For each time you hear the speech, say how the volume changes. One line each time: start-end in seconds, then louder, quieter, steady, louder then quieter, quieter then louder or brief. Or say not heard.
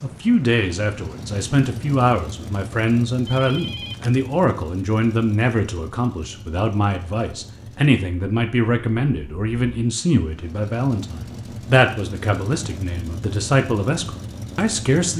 0.0-15.1 steady.